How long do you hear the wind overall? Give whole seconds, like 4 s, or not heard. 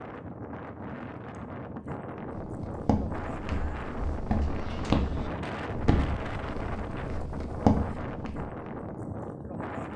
10 s.